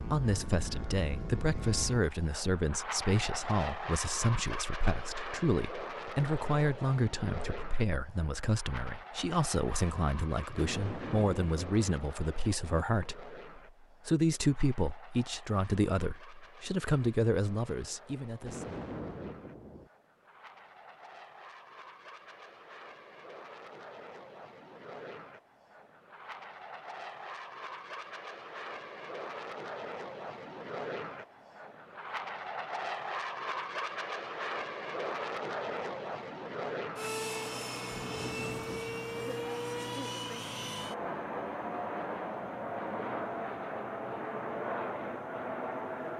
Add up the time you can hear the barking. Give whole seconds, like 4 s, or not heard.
not heard.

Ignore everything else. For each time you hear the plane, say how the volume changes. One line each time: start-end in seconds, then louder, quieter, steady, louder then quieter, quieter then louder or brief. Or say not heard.
0.0-46.1 quieter then louder.